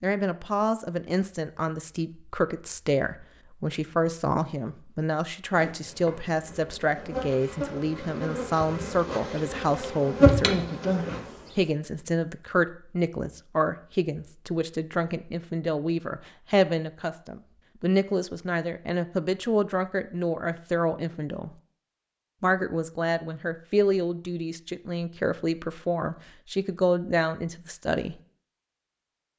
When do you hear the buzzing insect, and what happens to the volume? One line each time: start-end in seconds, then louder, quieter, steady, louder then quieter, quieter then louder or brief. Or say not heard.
5.5-11.6 louder.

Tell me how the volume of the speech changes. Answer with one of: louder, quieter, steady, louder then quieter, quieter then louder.
steady.